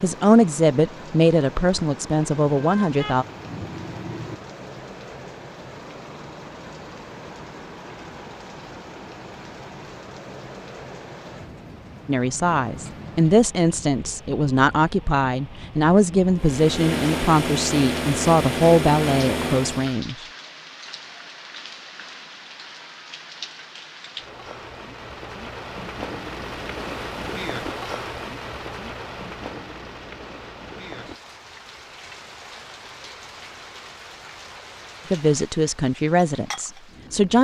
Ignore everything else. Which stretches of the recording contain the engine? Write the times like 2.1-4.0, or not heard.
16.4-20.0.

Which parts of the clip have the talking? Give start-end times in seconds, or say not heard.
0.0-3.2, 12.1-20.2, 35.1-37.3.